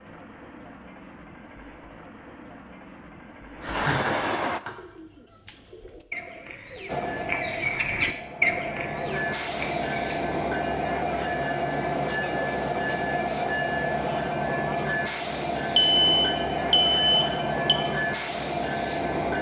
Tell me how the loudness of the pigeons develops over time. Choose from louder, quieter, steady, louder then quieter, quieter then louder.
louder then quieter.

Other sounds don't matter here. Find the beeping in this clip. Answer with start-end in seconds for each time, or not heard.
15.8-17.8.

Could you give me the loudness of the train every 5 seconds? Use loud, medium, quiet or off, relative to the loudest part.
medium, medium, loud, loud.